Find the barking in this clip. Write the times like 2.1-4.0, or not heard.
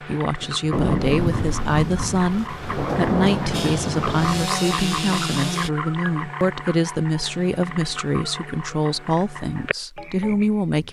not heard.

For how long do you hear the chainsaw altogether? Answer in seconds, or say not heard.
2 s.